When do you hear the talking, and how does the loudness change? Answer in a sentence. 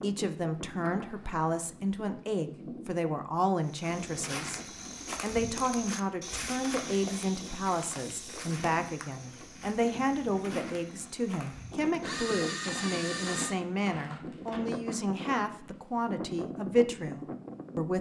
The talking can be heard from 0.0 to 17.9 s, at a steady volume.